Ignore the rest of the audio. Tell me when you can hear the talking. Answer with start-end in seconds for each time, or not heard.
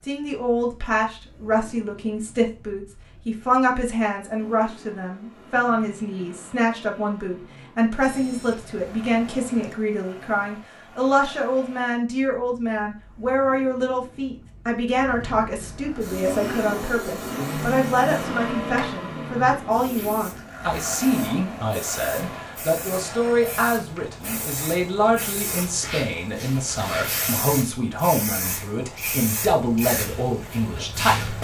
0.1-31.4.